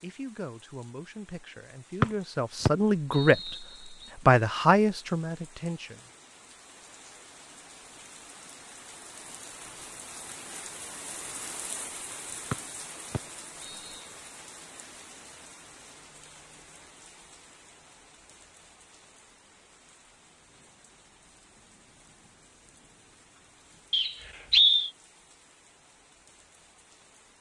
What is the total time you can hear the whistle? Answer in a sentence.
You can hear the whistle for 4 seconds altogether.